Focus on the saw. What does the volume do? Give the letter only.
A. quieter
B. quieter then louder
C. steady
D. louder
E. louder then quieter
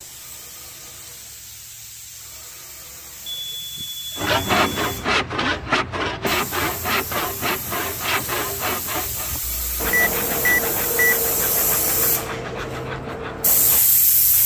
A.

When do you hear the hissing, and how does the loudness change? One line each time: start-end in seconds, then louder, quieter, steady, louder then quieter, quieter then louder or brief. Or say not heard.
0.0-14.4 louder.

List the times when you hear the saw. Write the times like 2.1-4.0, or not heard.
4.2-13.8.